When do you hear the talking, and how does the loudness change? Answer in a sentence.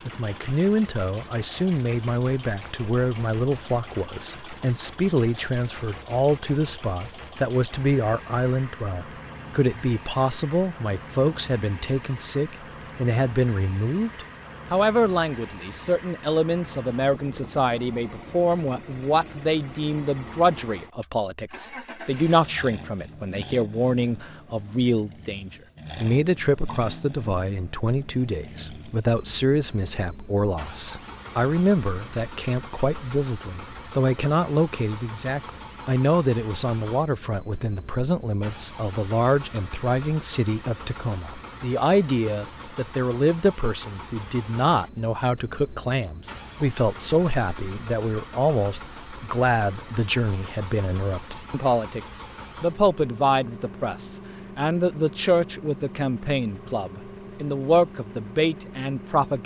You can hear the talking from 0.1 to 59.4 s, at a steady volume.